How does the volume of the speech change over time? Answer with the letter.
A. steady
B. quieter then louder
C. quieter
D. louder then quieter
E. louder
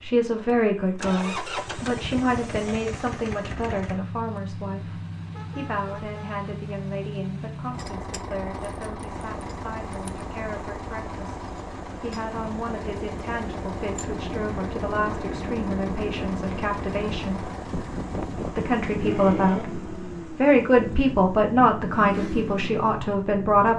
B.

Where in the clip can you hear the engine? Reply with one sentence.
The engine can be heard from 0.0 to 23.7 s.